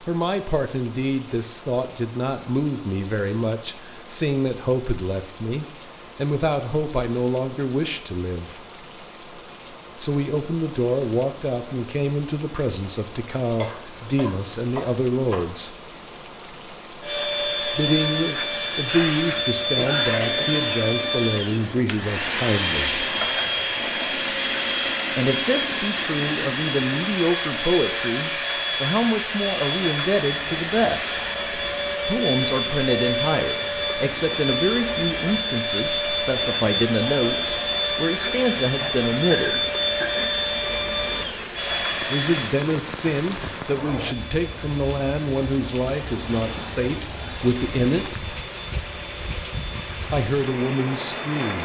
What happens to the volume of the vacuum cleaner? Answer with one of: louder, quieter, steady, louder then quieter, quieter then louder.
quieter.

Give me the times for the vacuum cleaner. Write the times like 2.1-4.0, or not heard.
17.0-51.5.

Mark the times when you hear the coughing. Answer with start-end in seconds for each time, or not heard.
13.6-15.4, 18.9-20.9, 38.6-40.3.